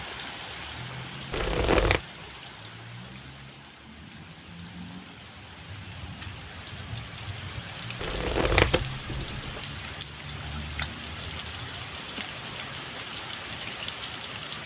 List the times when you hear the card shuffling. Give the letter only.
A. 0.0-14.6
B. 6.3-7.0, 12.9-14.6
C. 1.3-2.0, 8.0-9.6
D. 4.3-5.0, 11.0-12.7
C.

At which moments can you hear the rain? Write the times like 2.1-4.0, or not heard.
0.0-14.6.